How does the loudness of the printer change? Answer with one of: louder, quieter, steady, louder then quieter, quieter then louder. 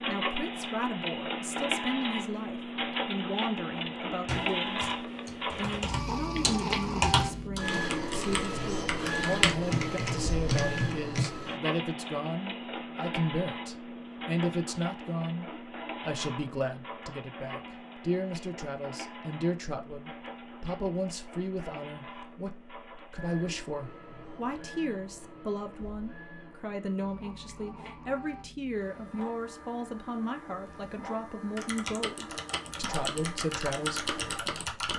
quieter.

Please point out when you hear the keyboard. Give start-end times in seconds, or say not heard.
4.2-11.3, 31.6-34.9.